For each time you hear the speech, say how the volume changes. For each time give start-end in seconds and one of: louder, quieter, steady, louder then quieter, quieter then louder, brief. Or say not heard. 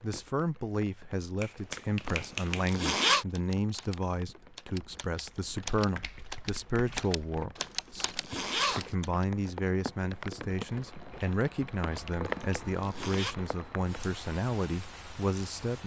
0.0-15.8 steady.